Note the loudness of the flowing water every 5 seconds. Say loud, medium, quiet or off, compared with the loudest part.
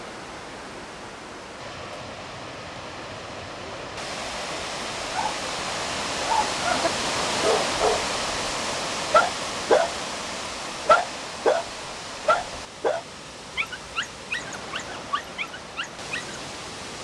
medium, loud, medium, medium.